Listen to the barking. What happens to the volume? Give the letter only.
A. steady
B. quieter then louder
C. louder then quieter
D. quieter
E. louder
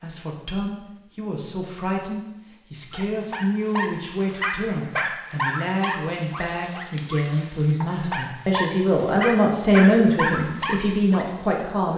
B.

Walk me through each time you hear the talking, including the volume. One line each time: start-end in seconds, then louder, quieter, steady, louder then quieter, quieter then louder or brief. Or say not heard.
0.0-11.9 louder.